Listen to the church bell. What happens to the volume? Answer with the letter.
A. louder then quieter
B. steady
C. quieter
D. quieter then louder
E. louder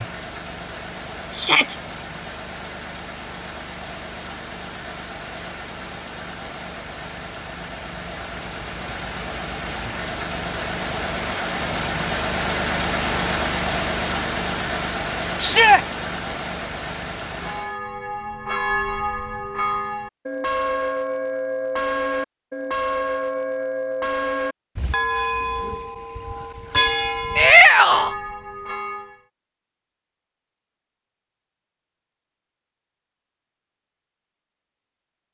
B.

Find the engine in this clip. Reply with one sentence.
You can hear the engine from 0.0 to 17.8 s.